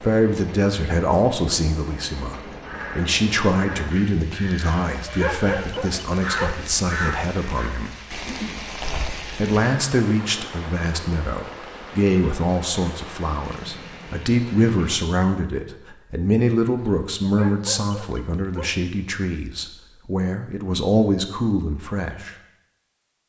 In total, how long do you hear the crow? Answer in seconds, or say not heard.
5 s.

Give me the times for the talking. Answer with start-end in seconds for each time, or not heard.
0.0-7.9, 9.3-22.4.